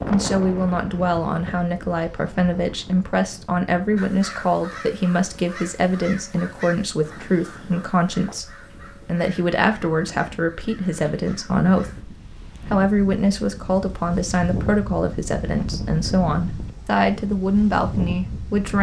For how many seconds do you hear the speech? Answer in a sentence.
You can hear the speech for 18 seconds altogether.